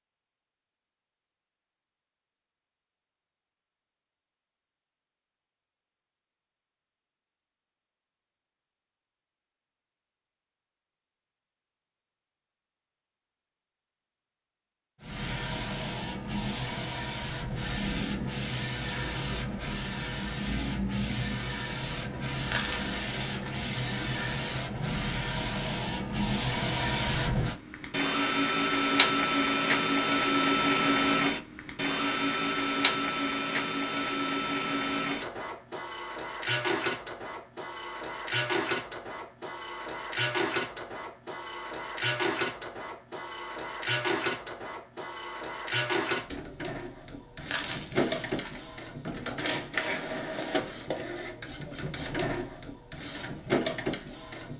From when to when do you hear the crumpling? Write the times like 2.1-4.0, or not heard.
22.4-23.6, 47.4-48.6.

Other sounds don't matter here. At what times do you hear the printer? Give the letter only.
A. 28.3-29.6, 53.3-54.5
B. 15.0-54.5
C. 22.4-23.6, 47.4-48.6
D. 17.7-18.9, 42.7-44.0
B.